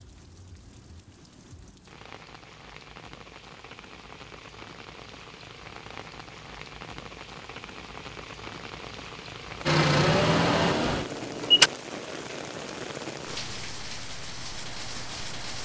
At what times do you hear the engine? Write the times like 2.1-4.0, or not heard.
9.7-11.7.